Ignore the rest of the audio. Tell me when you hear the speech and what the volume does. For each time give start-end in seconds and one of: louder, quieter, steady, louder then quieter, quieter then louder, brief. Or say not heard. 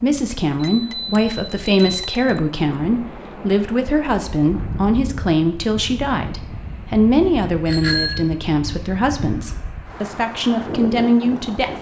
0.0-11.7 steady.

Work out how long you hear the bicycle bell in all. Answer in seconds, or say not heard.
2 s.